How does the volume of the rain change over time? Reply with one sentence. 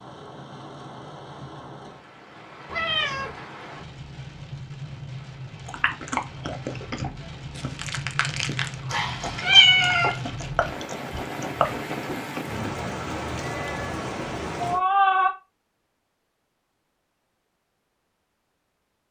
The volume of the rain goes up.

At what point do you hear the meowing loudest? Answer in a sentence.
The volume of the meowing peaks at 10 seconds.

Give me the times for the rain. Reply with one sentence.
You can hear the rain from 0.0 to 14.8 s.